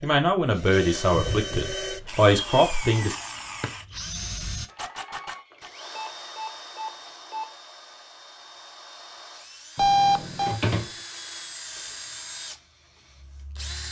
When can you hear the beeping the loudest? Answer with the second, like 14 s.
10 s.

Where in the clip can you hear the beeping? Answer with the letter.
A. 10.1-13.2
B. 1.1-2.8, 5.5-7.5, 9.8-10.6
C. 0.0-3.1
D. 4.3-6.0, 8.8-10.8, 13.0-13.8
B.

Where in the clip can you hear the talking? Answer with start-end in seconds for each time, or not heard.
0.0-3.1.